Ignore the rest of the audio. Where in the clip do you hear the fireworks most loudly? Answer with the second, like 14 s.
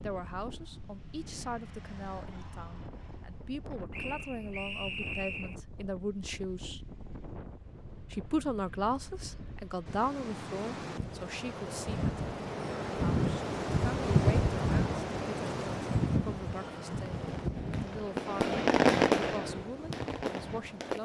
19 s.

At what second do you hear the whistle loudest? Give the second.
5 s.